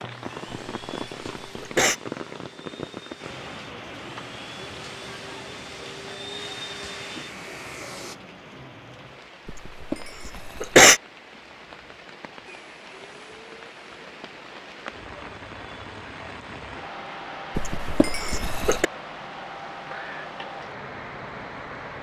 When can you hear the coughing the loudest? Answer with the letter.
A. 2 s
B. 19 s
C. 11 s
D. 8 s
C.